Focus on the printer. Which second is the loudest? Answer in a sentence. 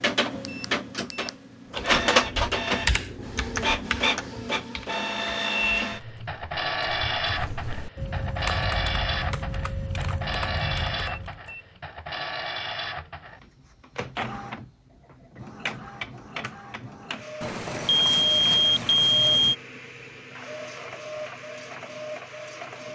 The volume of the printer peaks at 2 seconds.